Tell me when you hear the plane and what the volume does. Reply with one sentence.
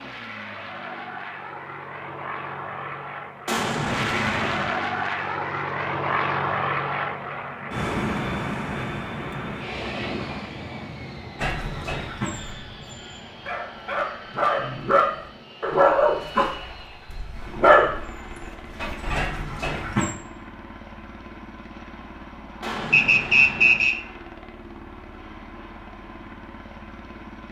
You can hear the plane from 0.0 to 27.4 s, getting quieter.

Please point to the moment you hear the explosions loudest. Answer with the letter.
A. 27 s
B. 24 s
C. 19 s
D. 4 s
D.